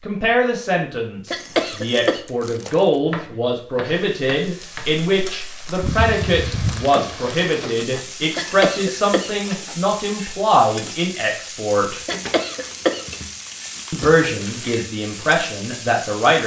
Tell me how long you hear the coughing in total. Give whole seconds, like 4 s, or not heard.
3 s.